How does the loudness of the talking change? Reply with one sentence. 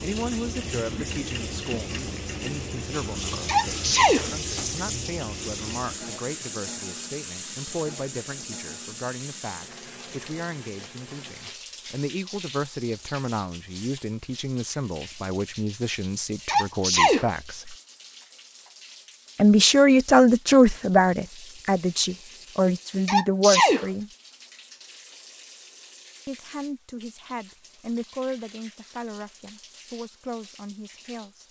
The volume of the talking goes up, then down.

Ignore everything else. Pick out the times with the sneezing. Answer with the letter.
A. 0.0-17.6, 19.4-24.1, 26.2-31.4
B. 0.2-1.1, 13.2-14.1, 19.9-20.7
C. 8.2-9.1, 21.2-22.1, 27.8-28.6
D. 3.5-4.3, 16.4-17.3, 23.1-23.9
D.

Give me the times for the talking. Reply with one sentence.
You can hear the talking from 0.0 to 17.6 s, from 19.4 to 24.1 s and from 26.2 to 31.4 s.